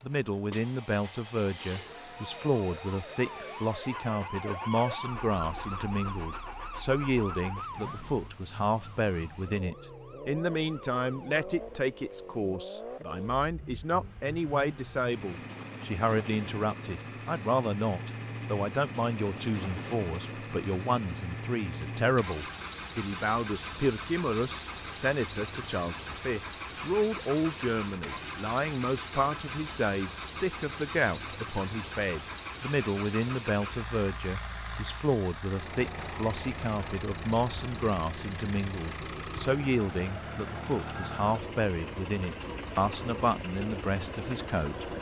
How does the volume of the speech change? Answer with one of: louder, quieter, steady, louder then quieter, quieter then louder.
steady.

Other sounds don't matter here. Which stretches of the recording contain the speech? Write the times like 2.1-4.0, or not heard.
0.0-44.9.